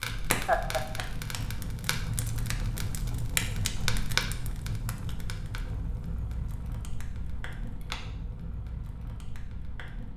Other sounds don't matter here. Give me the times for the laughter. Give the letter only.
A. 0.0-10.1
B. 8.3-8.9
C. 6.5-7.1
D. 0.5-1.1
D.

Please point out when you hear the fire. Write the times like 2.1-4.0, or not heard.
0.0-10.1.